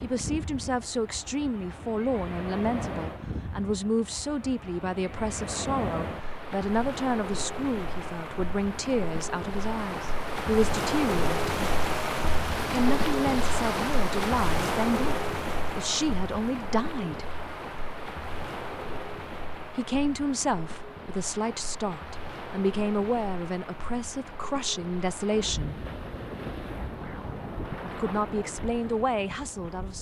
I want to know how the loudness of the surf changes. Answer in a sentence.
The loudness of the surf goes up, then down.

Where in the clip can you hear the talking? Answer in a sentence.
The talking can be heard from 0.0 to 11.6 s, from 12.7 to 17.2 s, from 19.8 to 25.8 s and from 27.9 to 29.9 s.